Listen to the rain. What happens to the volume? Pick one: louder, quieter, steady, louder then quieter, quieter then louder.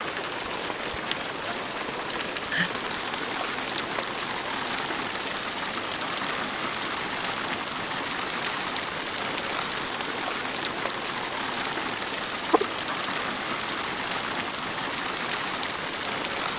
steady.